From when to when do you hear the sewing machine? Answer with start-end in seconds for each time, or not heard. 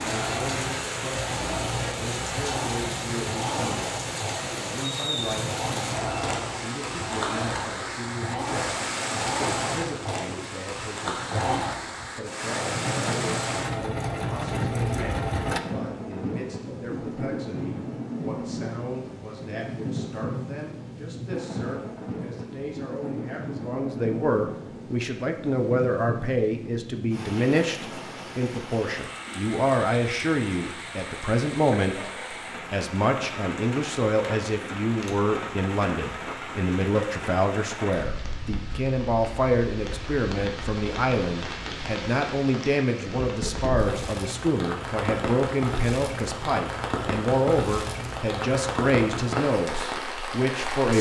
0.0-15.6.